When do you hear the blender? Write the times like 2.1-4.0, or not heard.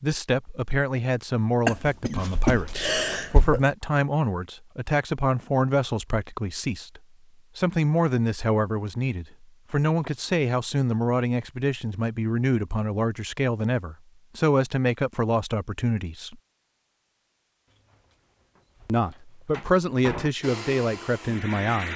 20.4-21.9.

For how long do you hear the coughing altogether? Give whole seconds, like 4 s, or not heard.
2 s.